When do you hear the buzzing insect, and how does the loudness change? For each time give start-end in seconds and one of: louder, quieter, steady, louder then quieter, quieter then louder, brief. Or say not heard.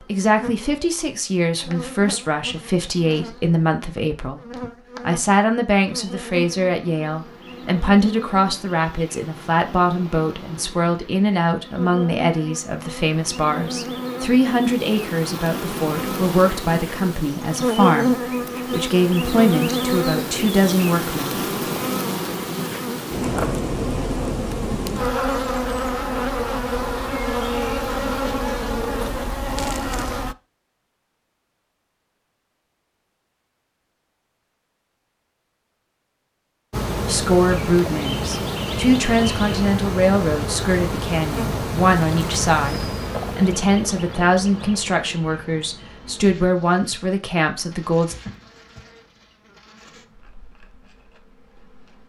0.0-30.4 louder
36.7-52.0 quieter.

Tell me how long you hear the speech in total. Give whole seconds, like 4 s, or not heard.
32 s.